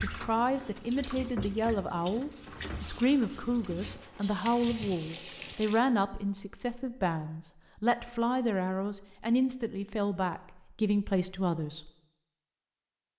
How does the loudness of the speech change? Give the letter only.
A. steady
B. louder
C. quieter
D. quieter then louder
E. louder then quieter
A.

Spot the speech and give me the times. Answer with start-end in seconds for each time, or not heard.
0.0-11.9.